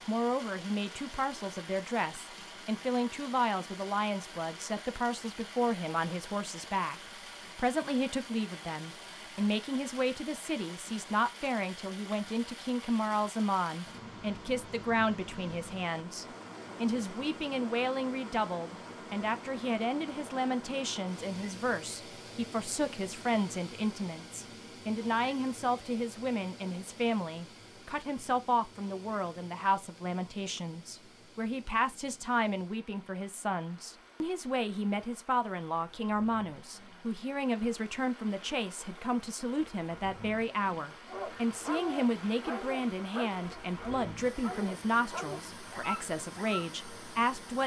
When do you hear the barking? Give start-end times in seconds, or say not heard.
41.0-46.6.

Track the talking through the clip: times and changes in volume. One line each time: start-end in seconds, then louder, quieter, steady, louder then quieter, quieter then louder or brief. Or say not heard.
0.1-47.6 steady.